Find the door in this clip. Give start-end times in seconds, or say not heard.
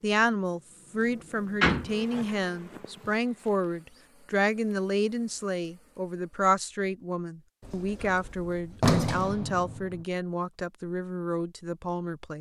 1.6-2.4, 7.7-10.0.